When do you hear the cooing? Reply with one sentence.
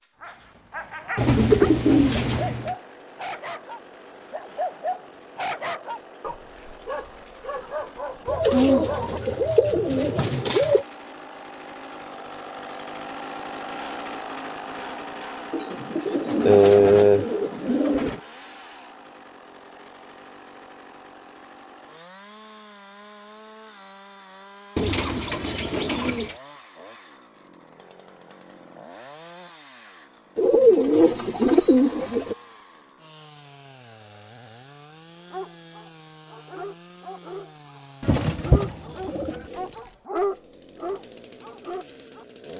The cooing can be heard from 1.1 to 2.8 s, from 8.2 to 10.8 s, from 15.5 to 18.2 s, from 24.8 to 26.4 s, from 30.4 to 32.4 s and from 38.0 to 39.5 s.